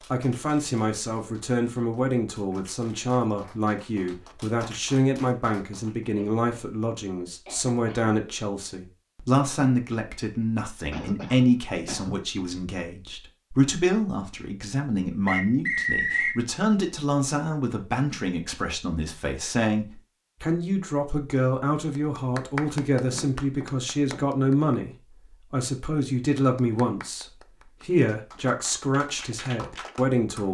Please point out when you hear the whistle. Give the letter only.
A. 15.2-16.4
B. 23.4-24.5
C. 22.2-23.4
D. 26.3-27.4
A.